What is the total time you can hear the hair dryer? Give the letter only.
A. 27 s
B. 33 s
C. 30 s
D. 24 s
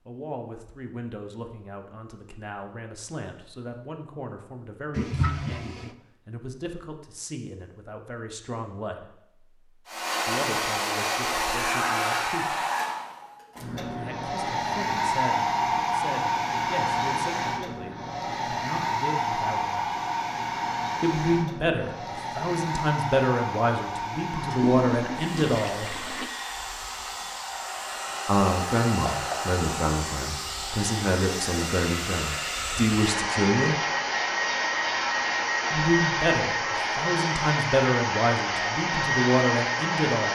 C.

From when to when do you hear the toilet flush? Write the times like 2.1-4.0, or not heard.
5.0-6.0, 24.4-26.3.